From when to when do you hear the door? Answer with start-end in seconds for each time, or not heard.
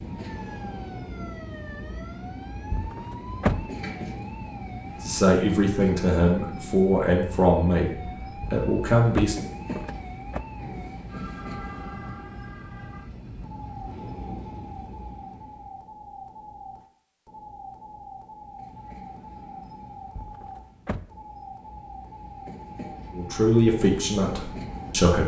2.7-3.7, 8.4-10.4, 20.1-21.1.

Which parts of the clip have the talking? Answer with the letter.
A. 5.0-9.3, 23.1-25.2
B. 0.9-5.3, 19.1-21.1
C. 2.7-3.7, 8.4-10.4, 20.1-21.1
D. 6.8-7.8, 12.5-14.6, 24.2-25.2
A.